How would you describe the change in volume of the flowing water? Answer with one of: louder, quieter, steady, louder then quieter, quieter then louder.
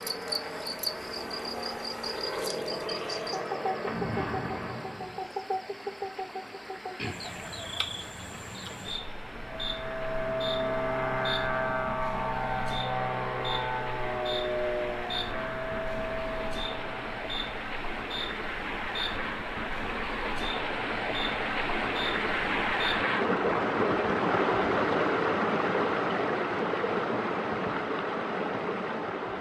louder.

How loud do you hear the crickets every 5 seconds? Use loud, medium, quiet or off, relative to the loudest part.
loud, loud, medium, medium, loud, off.